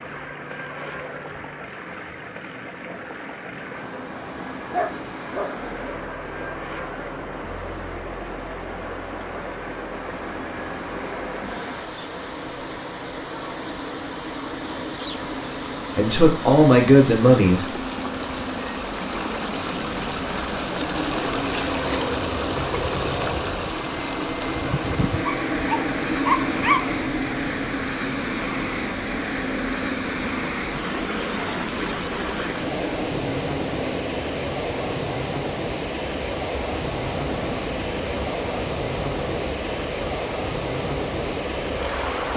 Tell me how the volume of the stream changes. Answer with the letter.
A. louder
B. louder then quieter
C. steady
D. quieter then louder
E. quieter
A.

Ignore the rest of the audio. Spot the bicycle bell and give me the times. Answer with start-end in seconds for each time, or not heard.
not heard.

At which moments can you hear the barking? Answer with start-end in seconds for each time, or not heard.
4.7-5.5, 25.2-26.9.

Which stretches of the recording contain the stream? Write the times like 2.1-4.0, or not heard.
0.0-42.3.